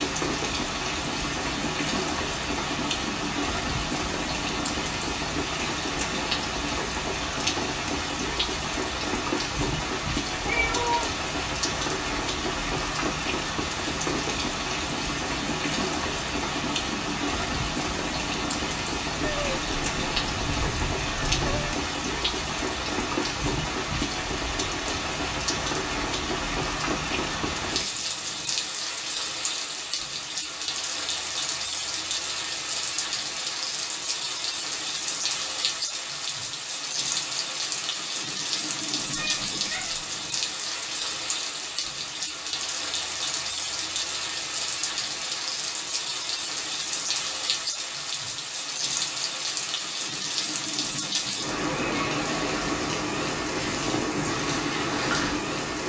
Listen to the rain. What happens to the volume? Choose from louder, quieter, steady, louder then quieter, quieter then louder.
steady.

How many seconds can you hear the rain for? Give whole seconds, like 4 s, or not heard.
56 s.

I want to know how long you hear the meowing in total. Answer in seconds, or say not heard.
4 s.